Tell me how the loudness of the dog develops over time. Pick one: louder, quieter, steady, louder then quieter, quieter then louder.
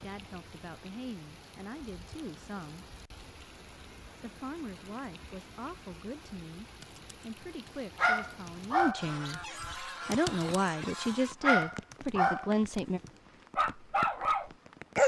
quieter then louder.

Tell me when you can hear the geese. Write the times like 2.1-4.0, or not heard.
8.9-11.3.